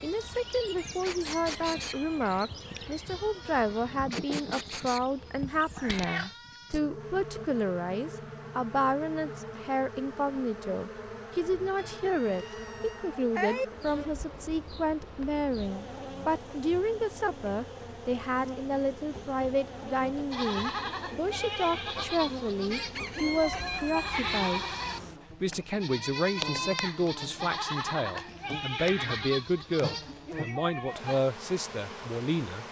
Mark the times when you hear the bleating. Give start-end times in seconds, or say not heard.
0.0-6.8, 20.3-31.2.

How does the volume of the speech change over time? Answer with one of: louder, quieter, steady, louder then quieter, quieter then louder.
steady.